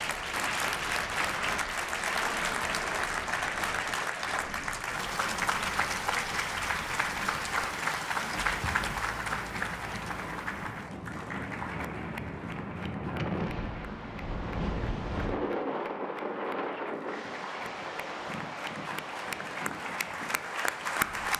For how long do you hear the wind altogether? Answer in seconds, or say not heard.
21 s.